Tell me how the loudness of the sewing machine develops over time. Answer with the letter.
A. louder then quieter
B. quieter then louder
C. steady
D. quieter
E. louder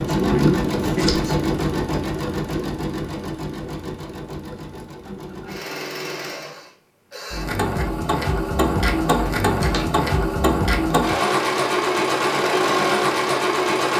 B.